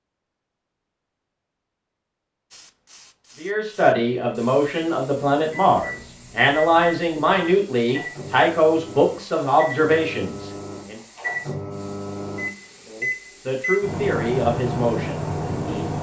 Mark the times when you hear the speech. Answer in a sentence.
You can hear the speech from 3.4 to 11.0 s and from 12.8 to 15.9 s.